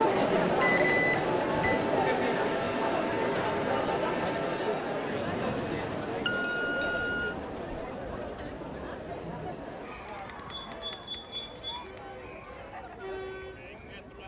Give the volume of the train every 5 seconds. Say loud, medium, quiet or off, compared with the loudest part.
loud, medium, quiet.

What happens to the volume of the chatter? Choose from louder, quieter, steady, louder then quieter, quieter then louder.
quieter.